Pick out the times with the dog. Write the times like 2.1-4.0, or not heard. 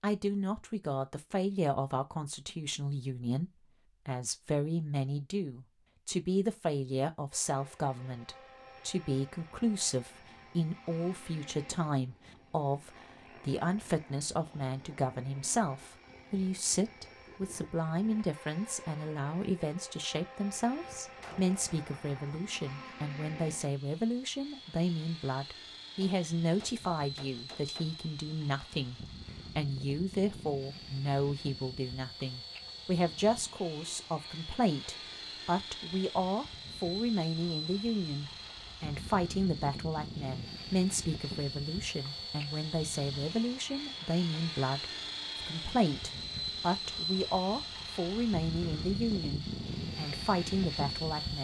not heard.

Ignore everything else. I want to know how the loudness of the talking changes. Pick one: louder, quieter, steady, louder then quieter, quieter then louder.
steady.